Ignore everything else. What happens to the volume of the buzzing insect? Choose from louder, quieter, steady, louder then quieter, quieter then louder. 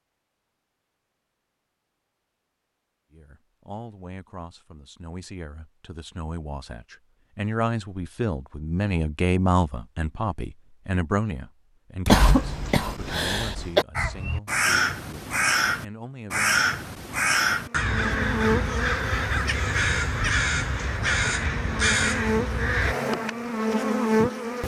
quieter then louder.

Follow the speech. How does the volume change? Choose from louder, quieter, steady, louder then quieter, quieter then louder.
louder then quieter.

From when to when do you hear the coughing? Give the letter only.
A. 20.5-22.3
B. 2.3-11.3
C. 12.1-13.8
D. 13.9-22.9
C.